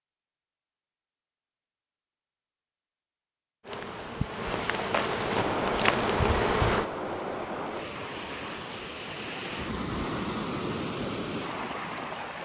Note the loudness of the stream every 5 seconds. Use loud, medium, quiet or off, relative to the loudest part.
off, loud, loud.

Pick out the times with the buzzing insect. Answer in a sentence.
The buzzing insect can be heard from 3.6 to 6.8 s.